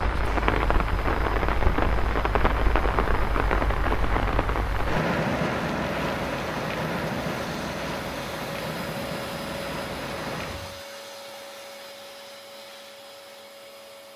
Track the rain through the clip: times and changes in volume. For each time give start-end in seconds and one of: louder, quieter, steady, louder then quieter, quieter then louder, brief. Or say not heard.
0.0-10.8 quieter.